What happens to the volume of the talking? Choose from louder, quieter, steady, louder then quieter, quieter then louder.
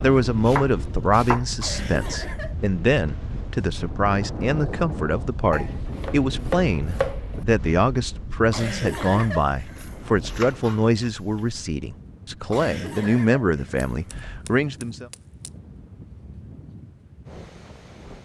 steady.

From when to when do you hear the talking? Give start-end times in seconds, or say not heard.
0.0-15.1.